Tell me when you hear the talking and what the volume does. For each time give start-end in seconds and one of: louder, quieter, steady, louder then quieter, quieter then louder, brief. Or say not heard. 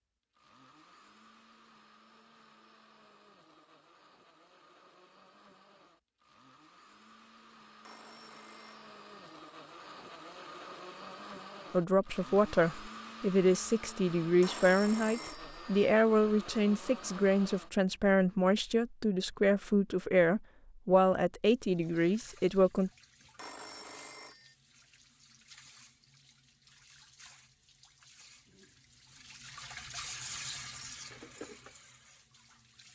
11.7-22.9 steady.